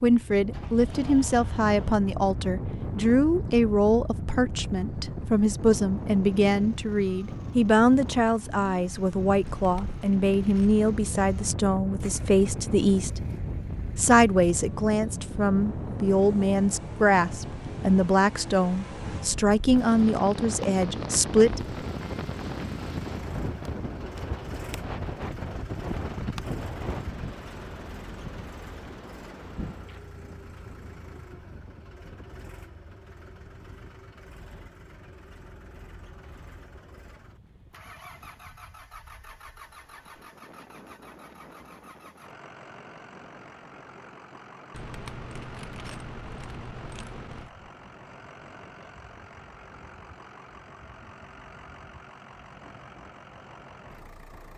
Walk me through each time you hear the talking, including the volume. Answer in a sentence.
You can hear the talking from 0.0 to 13.2 s, at a steady volume; and from 13.9 to 21.6 s, at a steady volume.